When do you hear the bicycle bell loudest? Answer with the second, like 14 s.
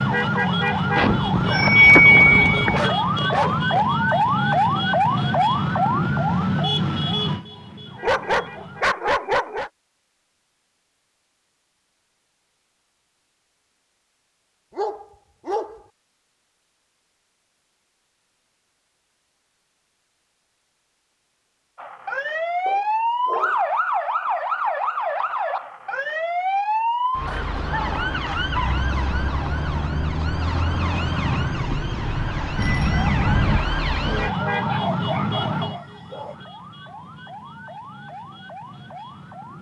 2 s.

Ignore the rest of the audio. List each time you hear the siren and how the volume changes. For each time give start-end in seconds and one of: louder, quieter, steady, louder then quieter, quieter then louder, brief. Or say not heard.
0.0-8.8 quieter
21.8-39.5 quieter.